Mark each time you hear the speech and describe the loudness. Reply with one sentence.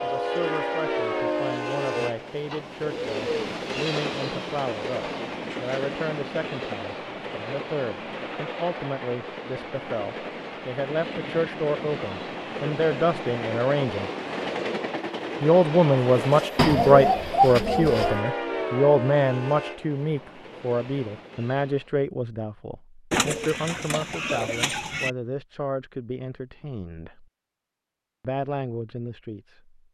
You can hear the speech from 0.0 to 14.1 s, getting louder; from 15.4 to 27.2 s, getting quieter; and briefly from 28.2 to 29.8 s.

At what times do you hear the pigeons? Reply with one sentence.
The pigeons can be heard from 1.9 to 3.5 s, from 16.6 to 18.2 s and from 23.1 to 25.1 s.